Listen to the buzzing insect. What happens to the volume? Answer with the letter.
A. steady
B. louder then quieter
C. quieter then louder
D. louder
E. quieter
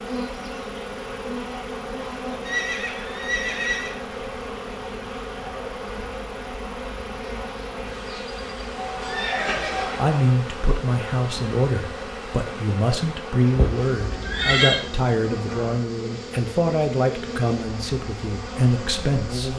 A.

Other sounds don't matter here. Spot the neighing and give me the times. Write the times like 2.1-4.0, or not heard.
2.5-4.0, 8.8-10.2, 13.6-14.8.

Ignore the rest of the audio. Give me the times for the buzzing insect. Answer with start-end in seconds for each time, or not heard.
0.0-19.5.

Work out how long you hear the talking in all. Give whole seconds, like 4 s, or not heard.
10 s.